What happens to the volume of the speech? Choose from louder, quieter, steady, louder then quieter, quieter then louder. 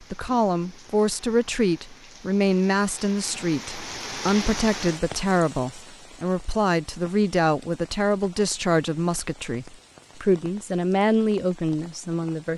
steady.